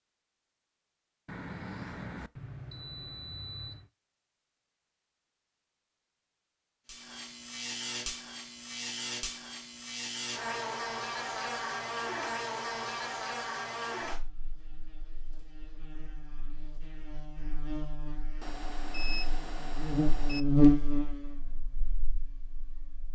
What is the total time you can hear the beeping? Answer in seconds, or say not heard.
5 s.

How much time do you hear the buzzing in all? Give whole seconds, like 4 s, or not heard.
16 s.